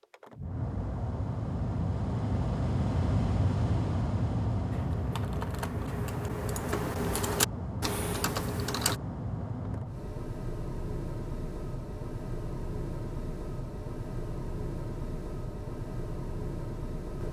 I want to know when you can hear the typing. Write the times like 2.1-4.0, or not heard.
4.7-8.9.